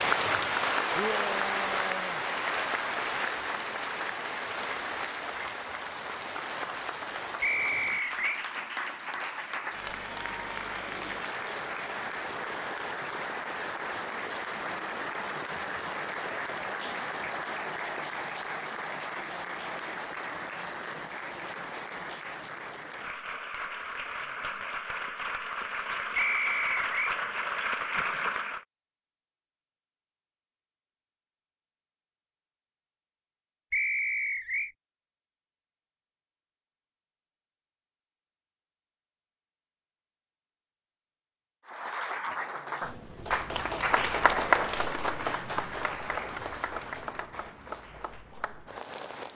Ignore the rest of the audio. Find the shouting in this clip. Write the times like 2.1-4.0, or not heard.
0.9-2.2.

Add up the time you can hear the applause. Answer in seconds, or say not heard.
36 s.